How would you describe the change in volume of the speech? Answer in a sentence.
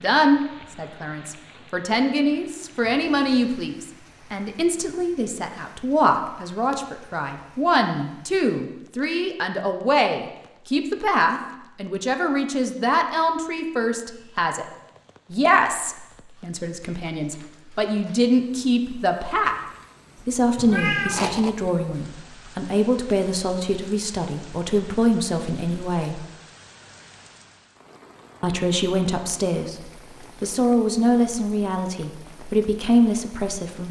The loudness of the speech stays about the same.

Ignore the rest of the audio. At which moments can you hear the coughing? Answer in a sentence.
The coughing can't be heard in this clip.